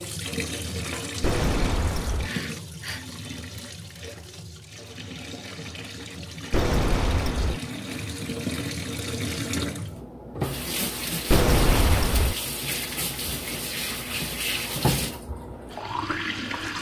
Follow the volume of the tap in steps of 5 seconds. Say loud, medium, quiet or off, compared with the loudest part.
medium, loud, loud, loud.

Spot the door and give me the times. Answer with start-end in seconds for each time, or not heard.
1.2-2.3, 6.5-7.6, 11.3-12.3.